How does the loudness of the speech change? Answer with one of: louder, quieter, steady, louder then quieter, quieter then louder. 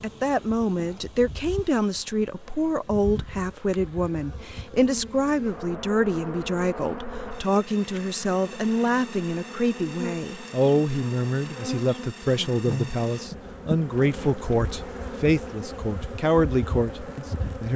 steady.